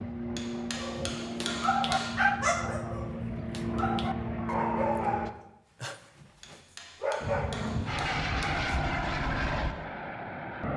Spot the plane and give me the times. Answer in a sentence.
You can hear the plane from 0.0 to 5.3 s and from 7.2 to 10.7 s.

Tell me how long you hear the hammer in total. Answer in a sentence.
The hammer can be heard for 4 seconds in total.